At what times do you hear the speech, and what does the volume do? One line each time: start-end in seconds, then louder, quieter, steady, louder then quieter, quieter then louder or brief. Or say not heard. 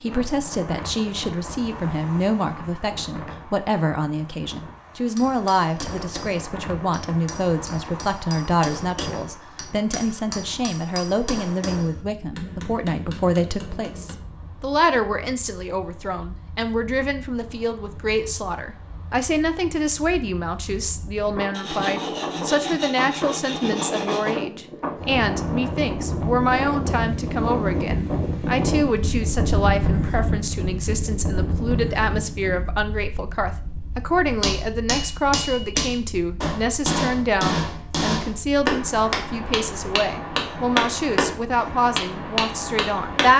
0.0-43.3 steady.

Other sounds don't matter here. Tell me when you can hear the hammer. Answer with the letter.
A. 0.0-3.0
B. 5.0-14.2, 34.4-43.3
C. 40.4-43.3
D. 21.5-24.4
B.